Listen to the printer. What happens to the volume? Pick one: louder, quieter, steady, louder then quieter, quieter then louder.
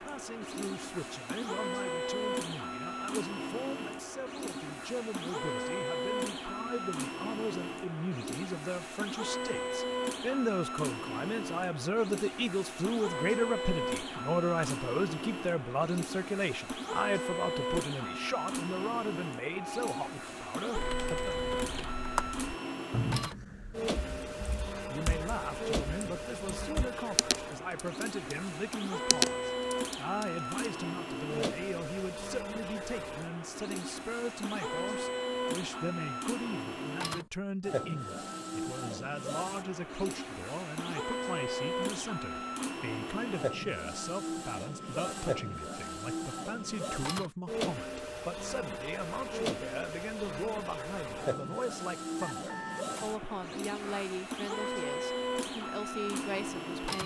steady.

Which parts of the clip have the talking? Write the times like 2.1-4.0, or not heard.
0.0-21.4, 24.9-57.0.